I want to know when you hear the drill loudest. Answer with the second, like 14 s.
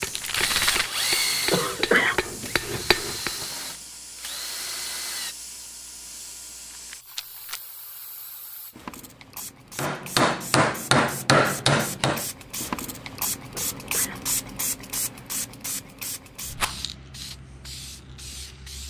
1 s.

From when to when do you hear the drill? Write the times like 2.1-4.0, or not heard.
0.0-5.3.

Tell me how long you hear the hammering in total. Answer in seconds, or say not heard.
6 s.